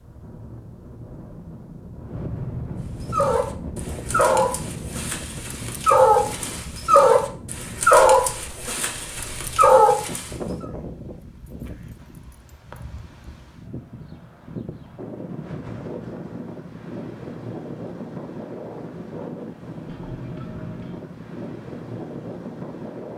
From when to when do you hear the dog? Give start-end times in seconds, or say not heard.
3.1-10.3.